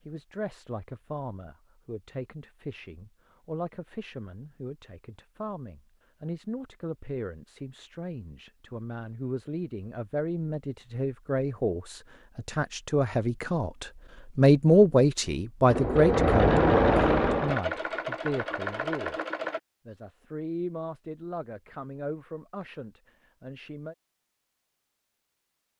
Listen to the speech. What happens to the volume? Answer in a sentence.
The loudness of the speech goes up, then down.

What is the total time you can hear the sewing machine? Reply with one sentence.
You can hear the sewing machine for 4 seconds altogether.